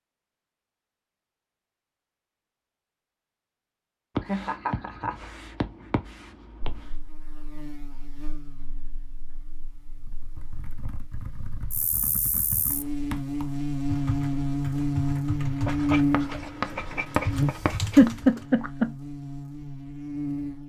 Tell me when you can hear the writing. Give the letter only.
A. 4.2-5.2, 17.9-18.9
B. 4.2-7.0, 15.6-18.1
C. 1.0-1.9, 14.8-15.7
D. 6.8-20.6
B.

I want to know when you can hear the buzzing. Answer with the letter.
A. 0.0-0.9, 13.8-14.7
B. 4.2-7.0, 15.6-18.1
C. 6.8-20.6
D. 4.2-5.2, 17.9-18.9
C.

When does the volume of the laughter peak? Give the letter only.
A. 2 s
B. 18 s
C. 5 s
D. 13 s
B.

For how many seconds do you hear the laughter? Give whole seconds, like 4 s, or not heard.
2 s.